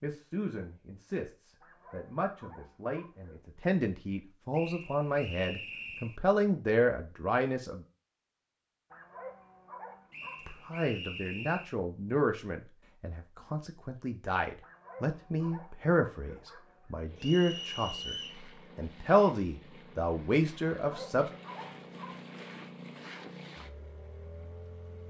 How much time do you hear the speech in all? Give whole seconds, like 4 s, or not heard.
19 s.